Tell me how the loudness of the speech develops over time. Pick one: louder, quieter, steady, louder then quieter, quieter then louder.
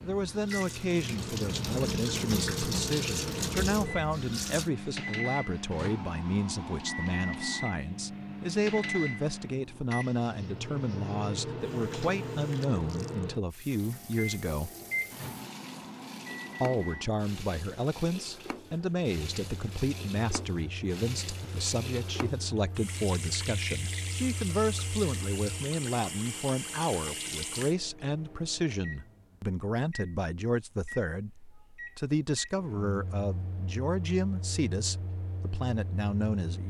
steady.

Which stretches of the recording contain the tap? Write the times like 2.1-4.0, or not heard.
0.0-4.7, 11.6-27.8.